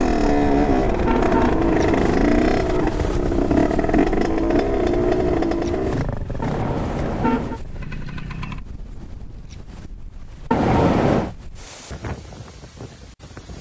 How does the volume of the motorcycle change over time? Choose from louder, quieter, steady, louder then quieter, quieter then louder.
quieter.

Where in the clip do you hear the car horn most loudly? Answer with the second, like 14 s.
11 s.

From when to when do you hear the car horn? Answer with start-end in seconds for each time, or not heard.
0.3-2.5, 6.4-7.6, 10.5-11.3.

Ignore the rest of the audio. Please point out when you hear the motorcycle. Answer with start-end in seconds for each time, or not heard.
0.0-8.6.